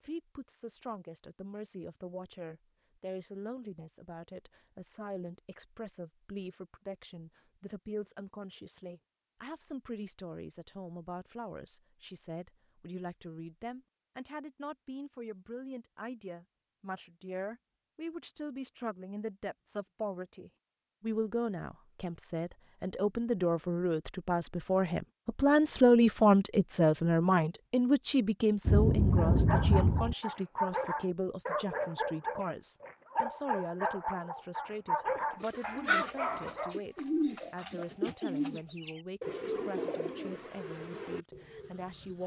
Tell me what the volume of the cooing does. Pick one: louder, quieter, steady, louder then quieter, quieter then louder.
quieter.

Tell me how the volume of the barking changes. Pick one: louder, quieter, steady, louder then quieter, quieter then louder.
steady.